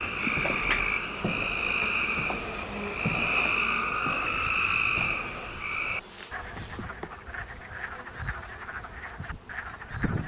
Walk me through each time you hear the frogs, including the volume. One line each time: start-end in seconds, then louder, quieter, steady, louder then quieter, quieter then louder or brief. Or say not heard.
0.0-10.2 quieter.